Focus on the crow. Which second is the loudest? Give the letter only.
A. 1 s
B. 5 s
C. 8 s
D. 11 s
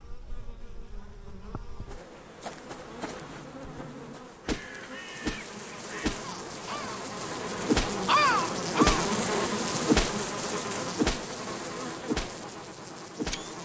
C.